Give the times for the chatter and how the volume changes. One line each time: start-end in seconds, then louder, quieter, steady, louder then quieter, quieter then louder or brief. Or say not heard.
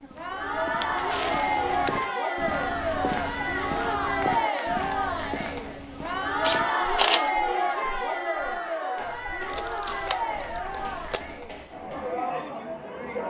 0.0-13.2 quieter.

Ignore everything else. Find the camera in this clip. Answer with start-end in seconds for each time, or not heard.
0.8-2.1, 6.4-7.3, 9.5-11.2.